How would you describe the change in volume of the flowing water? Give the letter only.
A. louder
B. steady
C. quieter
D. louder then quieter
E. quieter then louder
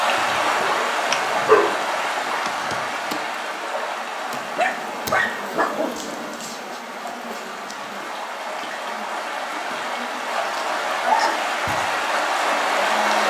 E.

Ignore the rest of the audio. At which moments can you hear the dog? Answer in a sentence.
You can hear the dog from 0.6 to 2.8 s, from 4.5 to 6.4 s and from 10.3 to 11.5 s.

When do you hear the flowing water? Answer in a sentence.
You can hear the flowing water from 0.0 to 13.2 s.